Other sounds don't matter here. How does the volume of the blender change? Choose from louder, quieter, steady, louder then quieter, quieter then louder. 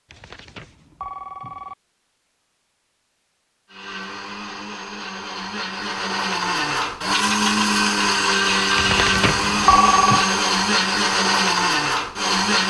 louder.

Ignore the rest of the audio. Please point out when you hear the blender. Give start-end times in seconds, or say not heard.
3.7-12.6.